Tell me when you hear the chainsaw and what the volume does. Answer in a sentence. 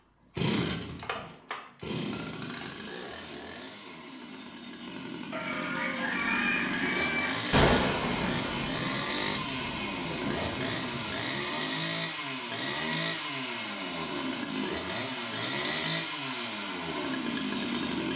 You can hear the chainsaw from 0.3 to 18.1 s, getting louder.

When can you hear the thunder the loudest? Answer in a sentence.
The volume of the thunder peaks at 8 seconds.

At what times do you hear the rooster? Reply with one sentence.
The rooster can be heard from 5.3 to 7.3 s.